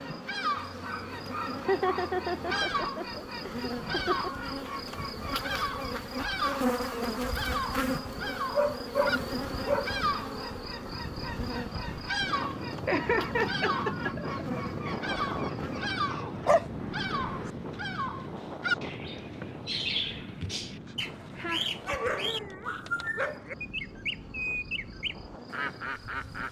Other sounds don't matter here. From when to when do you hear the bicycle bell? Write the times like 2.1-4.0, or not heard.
not heard.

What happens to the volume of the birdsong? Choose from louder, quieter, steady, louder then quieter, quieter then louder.
steady.